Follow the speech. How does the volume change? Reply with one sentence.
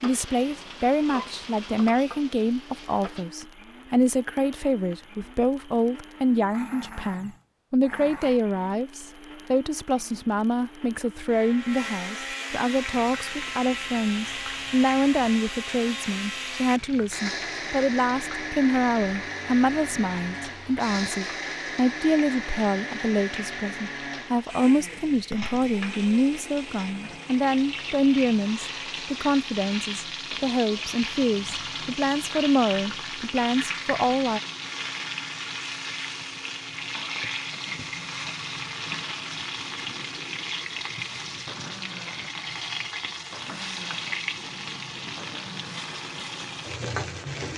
The loudness of the speech stays about the same.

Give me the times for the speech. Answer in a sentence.
You can hear the speech from 0.0 to 34.4 s.